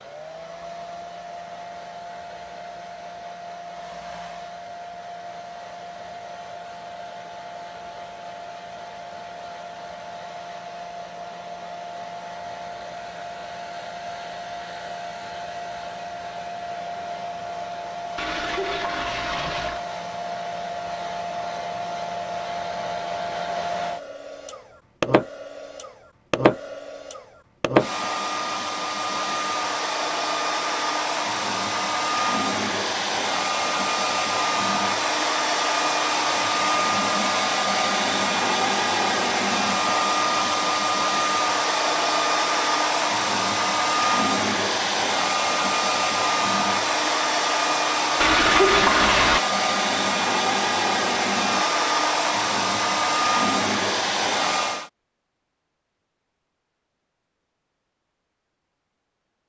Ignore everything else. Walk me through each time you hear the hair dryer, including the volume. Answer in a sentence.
The hair dryer can be heard from 0.0 to 54.9 s, getting louder.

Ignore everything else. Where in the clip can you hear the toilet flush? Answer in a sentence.
The toilet flush can be heard from 18.1 to 19.9 s and from 48.2 to 49.4 s.